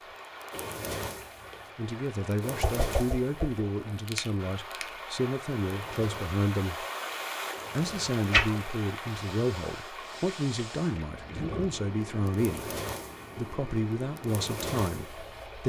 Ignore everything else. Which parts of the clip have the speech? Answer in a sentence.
The speech can be heard from 1.8 to 6.8 s, from 7.8 to 12.7 s and from 13.3 to 15.6 s.